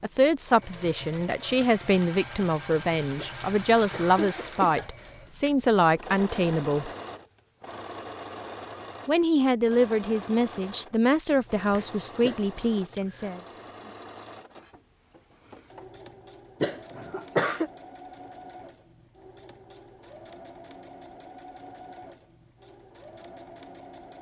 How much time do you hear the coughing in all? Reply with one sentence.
You can hear the coughing for 3 seconds altogether.